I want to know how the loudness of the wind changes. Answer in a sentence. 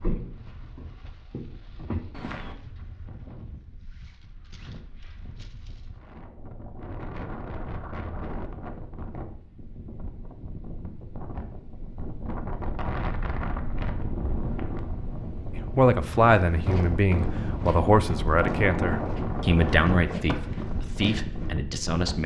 The volume of the wind goes up.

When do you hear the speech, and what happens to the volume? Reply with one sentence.
The speech can be heard from 15.5 to 22.2 s, getting quieter.